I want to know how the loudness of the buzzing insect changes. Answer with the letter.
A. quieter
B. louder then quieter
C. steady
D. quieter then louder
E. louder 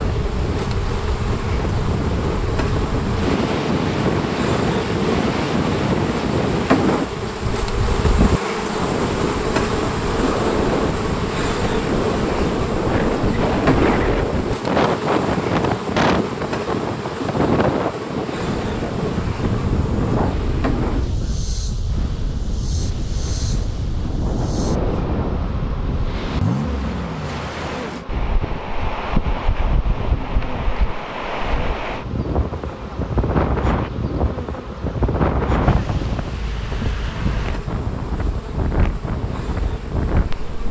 A.